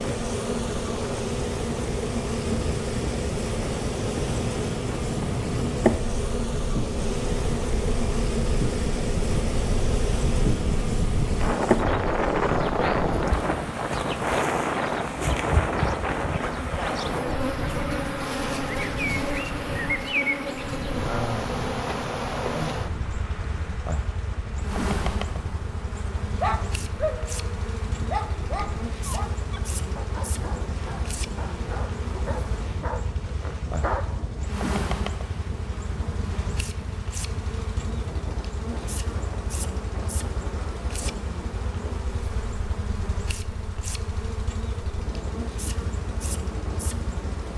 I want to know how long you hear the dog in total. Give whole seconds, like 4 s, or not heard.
8 s.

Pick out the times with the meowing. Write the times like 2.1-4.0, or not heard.
not heard.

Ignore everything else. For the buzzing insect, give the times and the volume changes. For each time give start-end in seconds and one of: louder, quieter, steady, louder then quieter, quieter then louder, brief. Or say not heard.
0.0-47.5 quieter.